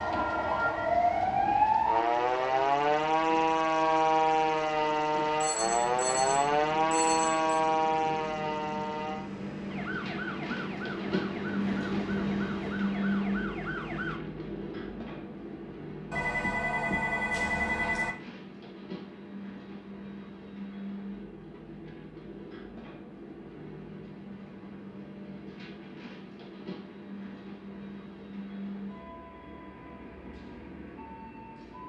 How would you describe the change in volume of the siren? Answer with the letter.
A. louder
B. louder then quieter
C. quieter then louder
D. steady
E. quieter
E.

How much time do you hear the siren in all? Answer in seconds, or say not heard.
14 s.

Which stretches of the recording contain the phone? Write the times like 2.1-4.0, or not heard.
5.4-7.6, 16.1-18.1.